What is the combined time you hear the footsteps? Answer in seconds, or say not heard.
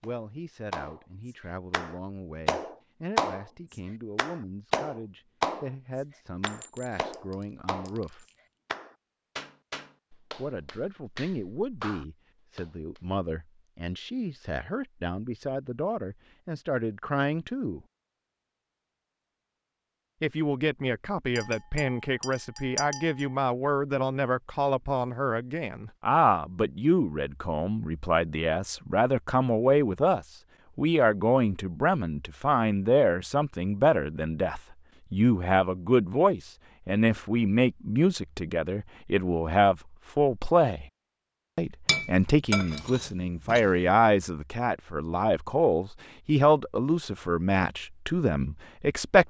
not heard.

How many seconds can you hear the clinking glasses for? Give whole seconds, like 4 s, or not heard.
6 s.